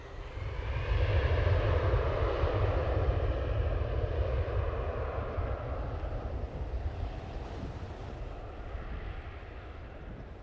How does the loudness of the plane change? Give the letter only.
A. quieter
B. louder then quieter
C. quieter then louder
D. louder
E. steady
A.